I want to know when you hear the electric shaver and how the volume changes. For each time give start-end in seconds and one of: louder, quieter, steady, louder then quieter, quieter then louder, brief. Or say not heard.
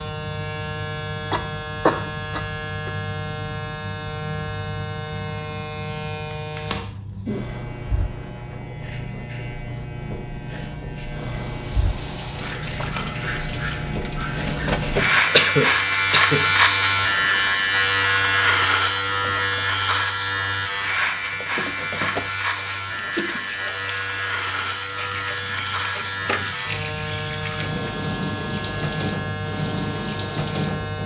0.0-31.0 louder then quieter.